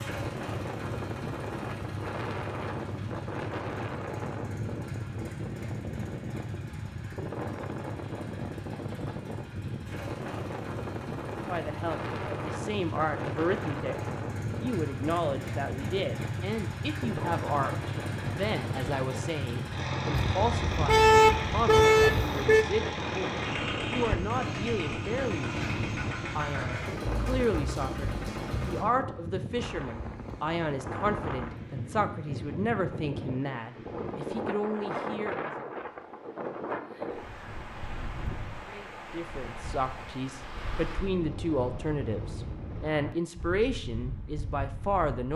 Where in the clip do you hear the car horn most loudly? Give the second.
21 s.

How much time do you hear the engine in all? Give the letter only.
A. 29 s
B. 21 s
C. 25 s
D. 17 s
A.